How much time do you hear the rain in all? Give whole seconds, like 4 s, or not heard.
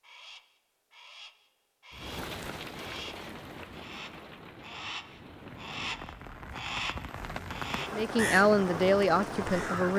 8 s.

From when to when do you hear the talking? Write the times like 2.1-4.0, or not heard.
7.9-9.9.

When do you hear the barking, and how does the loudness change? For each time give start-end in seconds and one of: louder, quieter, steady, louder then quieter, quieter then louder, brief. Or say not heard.
not heard.